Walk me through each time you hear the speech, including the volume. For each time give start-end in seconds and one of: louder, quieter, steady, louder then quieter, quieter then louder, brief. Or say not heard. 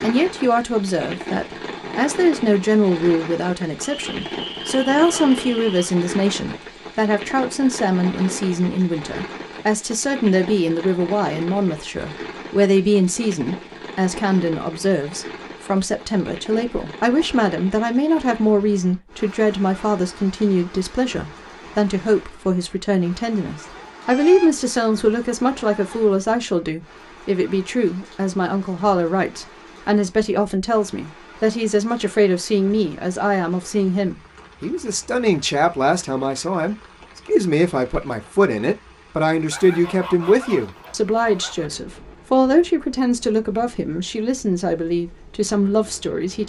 0.0-46.4 steady.